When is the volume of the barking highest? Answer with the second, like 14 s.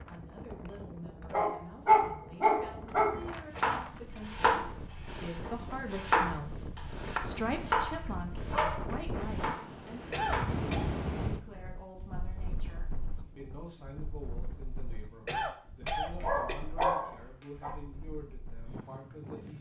2 s.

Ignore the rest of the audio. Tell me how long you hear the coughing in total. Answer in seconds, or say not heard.
3 s.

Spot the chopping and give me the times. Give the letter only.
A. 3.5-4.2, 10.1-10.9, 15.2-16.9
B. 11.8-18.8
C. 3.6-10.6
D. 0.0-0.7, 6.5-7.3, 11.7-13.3
C.